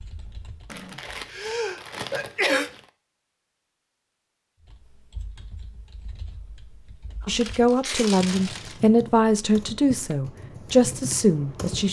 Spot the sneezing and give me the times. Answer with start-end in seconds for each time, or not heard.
1.3-2.7, 7.2-8.1.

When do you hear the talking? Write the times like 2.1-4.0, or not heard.
7.2-11.8.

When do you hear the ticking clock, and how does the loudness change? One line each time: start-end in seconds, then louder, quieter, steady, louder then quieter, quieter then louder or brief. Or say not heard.
not heard.